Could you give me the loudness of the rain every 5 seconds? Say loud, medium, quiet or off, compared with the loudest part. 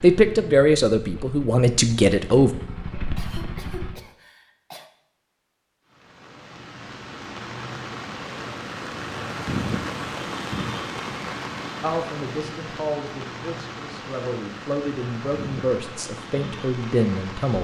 off, loud, loud, loud.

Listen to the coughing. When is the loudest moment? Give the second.
3 s.